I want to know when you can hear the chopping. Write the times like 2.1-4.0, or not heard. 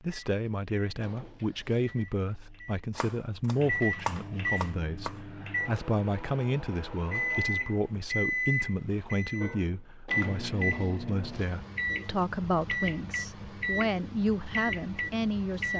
3.0-5.2.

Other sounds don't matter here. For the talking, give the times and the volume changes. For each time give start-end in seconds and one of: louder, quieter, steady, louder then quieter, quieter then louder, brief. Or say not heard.
0.0-15.7 steady.